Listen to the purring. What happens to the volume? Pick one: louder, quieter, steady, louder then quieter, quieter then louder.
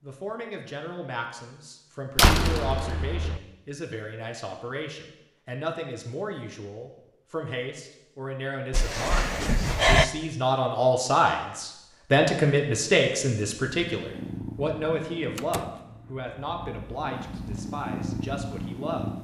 quieter then louder.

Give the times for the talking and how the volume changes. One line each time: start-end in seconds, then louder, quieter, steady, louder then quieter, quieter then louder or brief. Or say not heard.
0.0-19.1 louder then quieter.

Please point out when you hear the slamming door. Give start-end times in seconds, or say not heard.
2.1-3.4, 8.7-10.1, 15.3-15.8.